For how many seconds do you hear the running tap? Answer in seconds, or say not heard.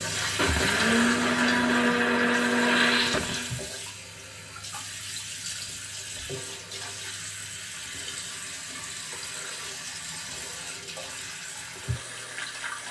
13 s.